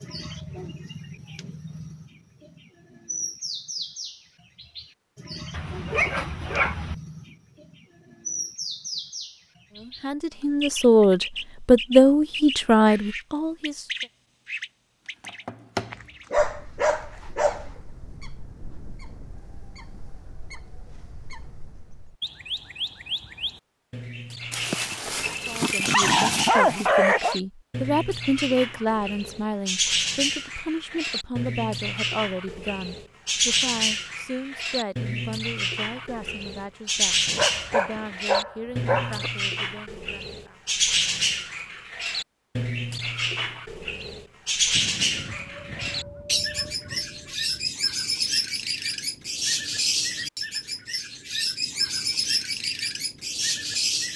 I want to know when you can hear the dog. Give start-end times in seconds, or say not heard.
5.5-7.0, 15.9-17.6, 24.5-27.4, 37.2-39.3, 44.7-47.7.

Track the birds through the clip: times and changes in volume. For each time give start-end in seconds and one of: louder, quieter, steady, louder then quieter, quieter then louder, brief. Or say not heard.
0.0-54.1 louder.